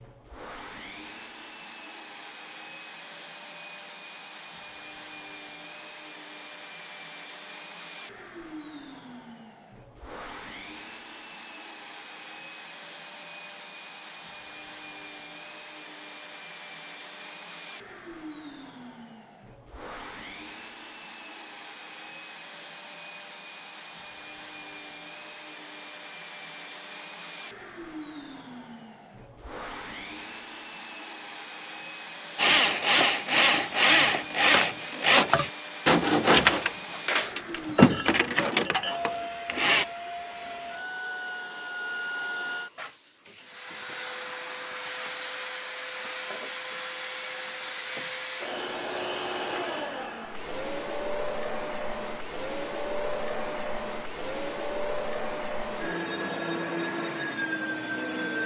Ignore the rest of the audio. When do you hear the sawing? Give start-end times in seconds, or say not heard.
32.4-39.9.